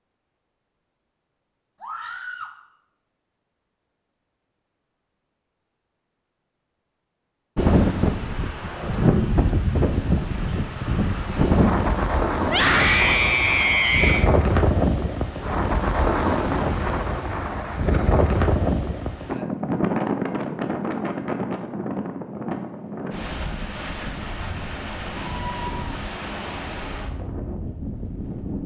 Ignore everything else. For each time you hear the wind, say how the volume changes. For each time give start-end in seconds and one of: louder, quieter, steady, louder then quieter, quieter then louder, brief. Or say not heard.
7.5-28.6 quieter.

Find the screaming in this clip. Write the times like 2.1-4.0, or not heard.
1.8-2.5, 12.4-14.3, 25.1-26.1.